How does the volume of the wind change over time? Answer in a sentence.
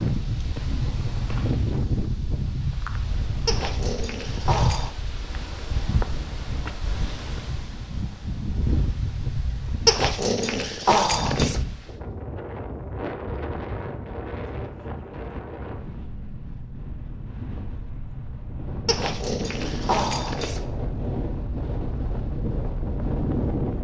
The volume of the wind goes down, then up.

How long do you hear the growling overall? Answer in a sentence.
You can hear the growling for 5 seconds altogether.